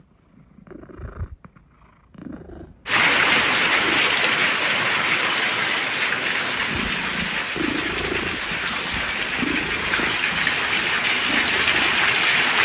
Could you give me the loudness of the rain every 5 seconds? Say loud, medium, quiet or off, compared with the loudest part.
loud, medium, loud.